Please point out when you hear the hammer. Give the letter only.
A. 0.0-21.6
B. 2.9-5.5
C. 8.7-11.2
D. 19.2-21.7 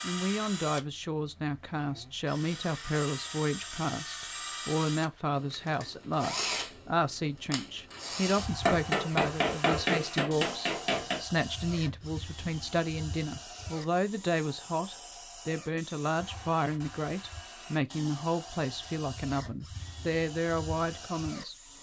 C.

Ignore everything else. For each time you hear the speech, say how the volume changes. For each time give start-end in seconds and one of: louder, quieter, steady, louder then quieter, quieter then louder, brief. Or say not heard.
0.0-21.6 steady.